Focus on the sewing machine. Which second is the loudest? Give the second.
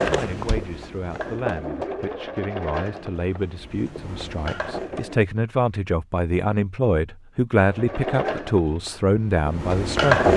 10 s.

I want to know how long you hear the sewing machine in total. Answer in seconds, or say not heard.
8 s.